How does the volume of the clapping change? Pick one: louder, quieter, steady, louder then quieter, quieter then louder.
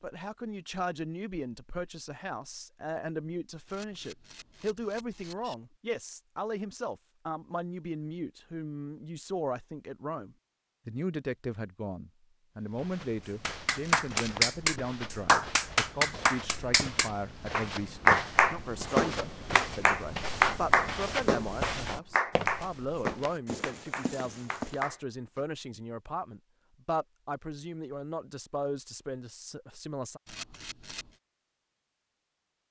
quieter.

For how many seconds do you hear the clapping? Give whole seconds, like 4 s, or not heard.
12 s.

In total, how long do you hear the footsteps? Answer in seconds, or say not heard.
12 s.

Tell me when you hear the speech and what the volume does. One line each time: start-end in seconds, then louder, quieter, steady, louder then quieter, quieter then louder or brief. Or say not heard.
0.0-30.2 steady.